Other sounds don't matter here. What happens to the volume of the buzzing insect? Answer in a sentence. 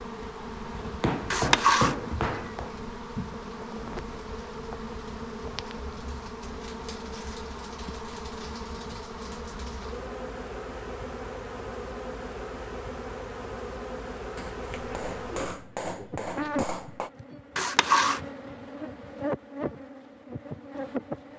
The loudness of the buzzing insect stays about the same.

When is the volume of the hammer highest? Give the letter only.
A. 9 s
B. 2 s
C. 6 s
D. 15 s
B.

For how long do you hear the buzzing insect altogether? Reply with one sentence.
The buzzing insect can be heard for 21 seconds in total.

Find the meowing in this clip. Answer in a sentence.
The meowing can be heard from 1.3 to 2.5 s and from 17.6 to 18.2 s.